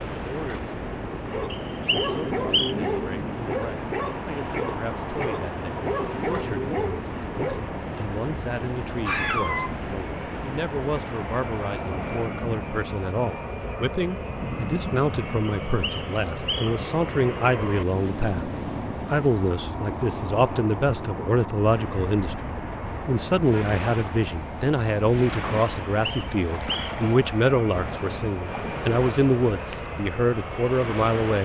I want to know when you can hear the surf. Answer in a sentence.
You can hear the surf from 0.0 to 31.4 s.